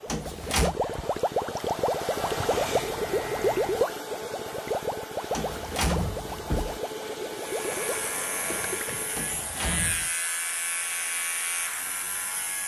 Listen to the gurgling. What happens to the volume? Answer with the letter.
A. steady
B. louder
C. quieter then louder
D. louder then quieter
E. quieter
E.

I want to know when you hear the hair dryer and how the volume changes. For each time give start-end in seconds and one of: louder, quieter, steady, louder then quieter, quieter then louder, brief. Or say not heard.
0.0-12.6 quieter.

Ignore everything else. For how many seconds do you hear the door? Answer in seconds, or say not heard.
3 s.